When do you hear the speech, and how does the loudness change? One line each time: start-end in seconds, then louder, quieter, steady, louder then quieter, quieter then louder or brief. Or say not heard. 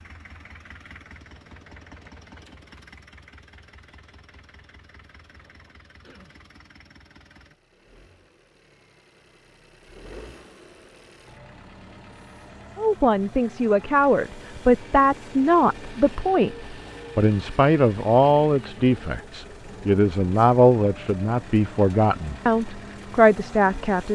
12.8-24.1 steady.